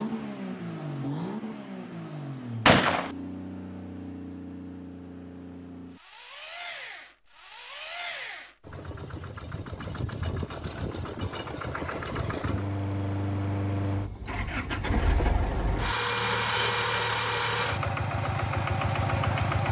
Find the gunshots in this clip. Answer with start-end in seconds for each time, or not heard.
2.6-3.1.